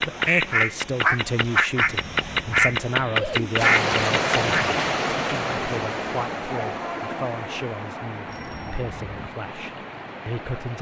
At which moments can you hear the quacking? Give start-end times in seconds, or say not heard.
0.0-4.8.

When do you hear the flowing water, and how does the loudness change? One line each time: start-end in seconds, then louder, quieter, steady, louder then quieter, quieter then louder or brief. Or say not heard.
3.5-10.7 quieter.